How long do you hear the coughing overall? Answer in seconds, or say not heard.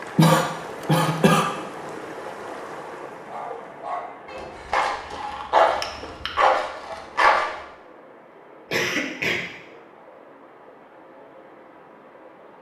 3 s.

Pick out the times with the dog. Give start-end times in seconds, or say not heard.
3.2-7.5.